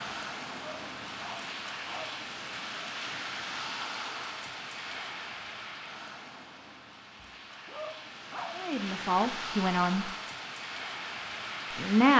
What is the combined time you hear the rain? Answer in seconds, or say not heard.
12 s.